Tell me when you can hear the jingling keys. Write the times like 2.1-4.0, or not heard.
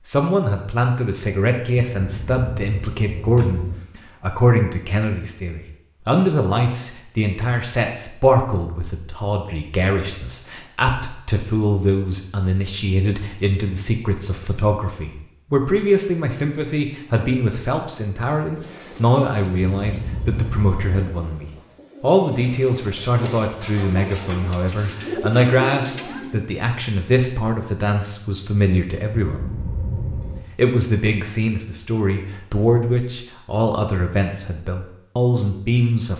1.9-3.8, 19.8-21.1, 29.2-30.4.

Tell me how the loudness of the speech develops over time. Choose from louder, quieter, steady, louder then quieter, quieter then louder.
steady.